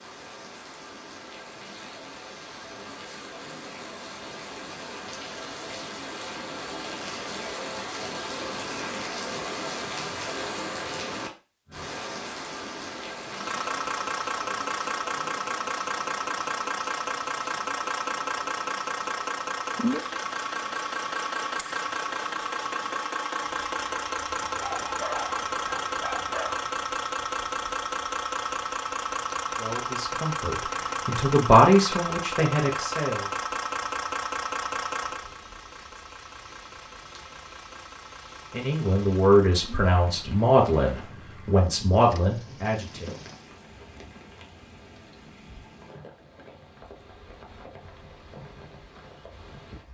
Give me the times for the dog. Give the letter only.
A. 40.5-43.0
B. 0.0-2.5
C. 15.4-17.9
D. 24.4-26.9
D.